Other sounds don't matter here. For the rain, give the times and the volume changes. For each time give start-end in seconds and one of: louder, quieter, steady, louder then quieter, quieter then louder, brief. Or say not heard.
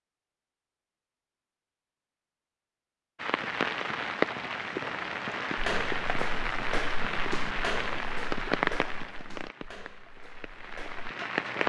3.1-11.6 quieter.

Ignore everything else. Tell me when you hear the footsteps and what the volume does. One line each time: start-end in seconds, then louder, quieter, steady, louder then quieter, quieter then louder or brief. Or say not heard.
5.5-11.1 quieter.